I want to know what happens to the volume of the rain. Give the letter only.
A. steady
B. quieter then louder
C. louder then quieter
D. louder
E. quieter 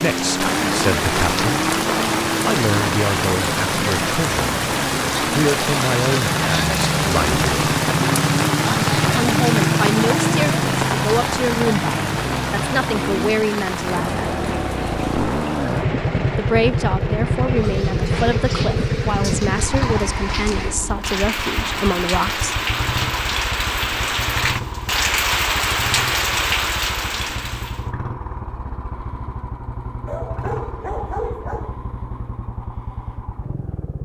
B.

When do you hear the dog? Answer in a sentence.
The dog can be heard from 30.1 to 31.8 s.